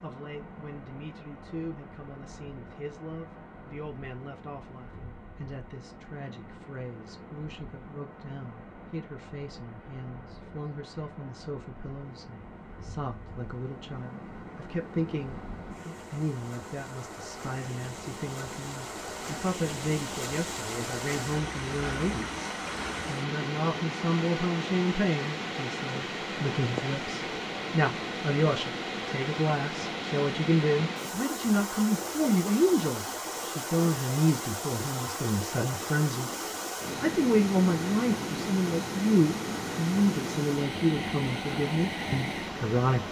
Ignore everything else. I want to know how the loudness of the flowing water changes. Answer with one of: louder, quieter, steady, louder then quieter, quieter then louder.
louder.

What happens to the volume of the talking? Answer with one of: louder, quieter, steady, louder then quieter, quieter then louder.
louder.